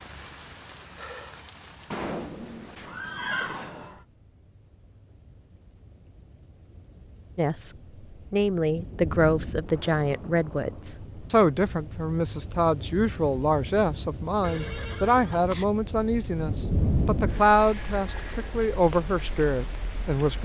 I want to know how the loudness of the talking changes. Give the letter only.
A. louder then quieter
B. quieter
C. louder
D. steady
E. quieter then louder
D.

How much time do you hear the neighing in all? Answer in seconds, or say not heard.
3 s.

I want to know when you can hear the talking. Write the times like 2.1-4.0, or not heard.
7.3-20.4.